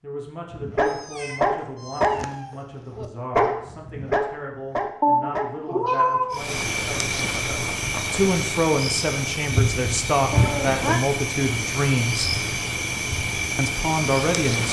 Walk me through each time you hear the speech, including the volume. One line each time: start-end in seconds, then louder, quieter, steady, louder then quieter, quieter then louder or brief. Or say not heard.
0.0-12.3 louder
13.6-14.6 brief.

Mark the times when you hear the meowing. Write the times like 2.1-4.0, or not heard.
1.0-2.5, 5.0-6.4, 10.3-11.0.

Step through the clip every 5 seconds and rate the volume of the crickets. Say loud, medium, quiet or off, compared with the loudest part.
off, loud, loud.